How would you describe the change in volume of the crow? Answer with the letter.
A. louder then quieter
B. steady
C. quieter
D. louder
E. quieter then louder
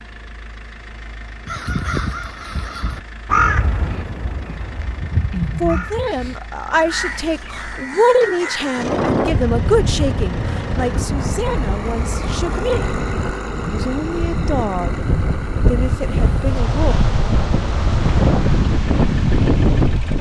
A.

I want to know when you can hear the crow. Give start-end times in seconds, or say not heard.
1.4-8.9.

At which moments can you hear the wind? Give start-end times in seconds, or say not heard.
8.8-20.1.